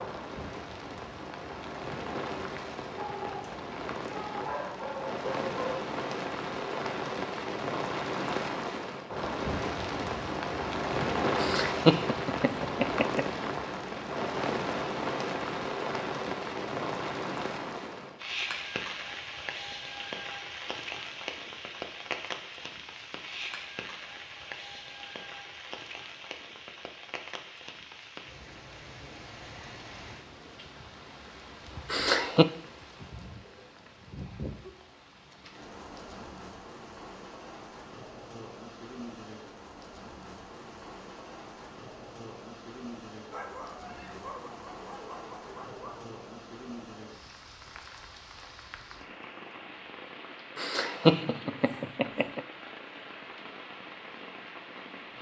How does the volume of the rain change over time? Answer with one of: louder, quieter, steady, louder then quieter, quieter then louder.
quieter.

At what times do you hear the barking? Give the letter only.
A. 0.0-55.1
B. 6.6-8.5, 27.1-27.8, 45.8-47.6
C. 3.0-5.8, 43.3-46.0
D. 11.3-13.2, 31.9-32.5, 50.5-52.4
C.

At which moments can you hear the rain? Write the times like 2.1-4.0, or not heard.
0.0-55.1.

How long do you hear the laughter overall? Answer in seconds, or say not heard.
4 s.